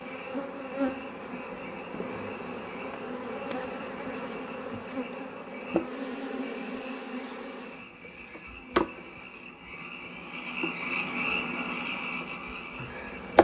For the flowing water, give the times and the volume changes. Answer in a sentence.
You can't hear the flowing water here.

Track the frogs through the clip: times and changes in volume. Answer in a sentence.
The frogs can be heard from 0.0 to 13.3 s, getting louder.